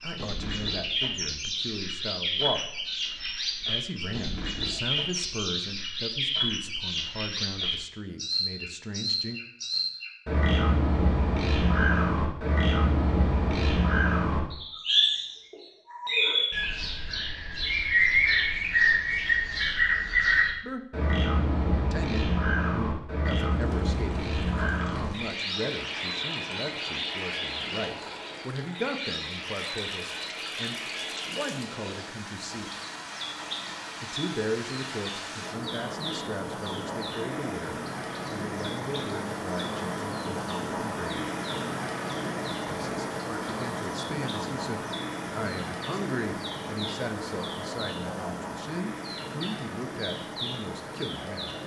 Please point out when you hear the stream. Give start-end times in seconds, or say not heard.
23.5-51.6.